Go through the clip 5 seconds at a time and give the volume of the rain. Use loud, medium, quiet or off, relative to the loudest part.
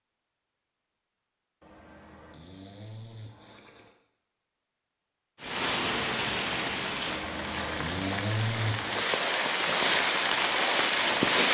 off, medium, loud.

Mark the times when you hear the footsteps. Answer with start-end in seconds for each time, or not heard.
not heard.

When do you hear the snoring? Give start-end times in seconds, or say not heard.
1.6-4.0, 7.0-9.1.